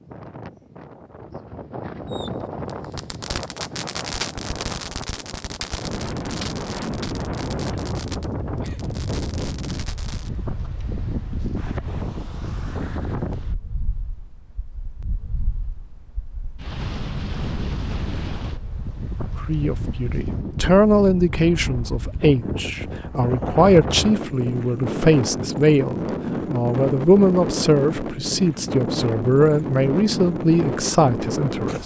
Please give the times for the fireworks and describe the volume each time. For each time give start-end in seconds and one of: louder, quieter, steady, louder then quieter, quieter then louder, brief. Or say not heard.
2.1-10.3 quieter.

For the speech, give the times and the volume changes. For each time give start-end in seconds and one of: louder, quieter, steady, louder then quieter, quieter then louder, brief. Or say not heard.
19.4-31.8 steady.